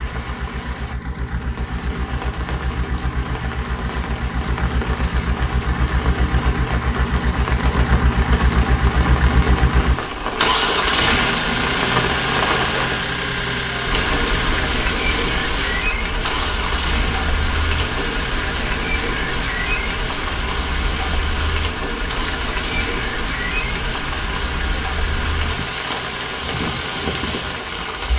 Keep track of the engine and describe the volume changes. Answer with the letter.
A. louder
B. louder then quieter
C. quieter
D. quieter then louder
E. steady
B.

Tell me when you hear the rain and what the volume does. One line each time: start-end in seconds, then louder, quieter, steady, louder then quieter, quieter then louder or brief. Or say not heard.
0.0-28.1 louder.